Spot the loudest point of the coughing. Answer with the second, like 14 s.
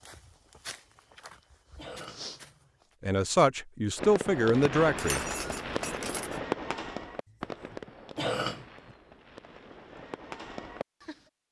8 s.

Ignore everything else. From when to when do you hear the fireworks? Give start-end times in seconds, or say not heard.
4.0-11.2.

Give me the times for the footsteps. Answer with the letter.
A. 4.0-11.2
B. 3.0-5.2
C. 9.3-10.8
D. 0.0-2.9
D.